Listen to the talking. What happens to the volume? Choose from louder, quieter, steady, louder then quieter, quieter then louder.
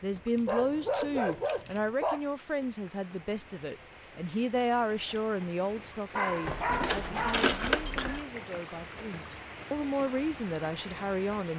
quieter then louder.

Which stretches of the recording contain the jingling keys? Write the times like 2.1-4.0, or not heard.
0.3-1.9, 6.5-8.2.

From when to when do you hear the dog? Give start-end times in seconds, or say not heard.
0.5-2.2, 6.1-7.5.